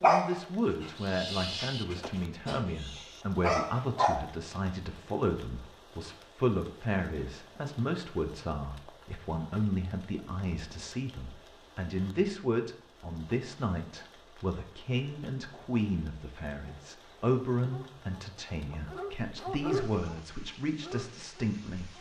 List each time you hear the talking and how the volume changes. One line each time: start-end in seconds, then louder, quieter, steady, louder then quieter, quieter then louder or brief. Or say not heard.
0.1-21.9 steady.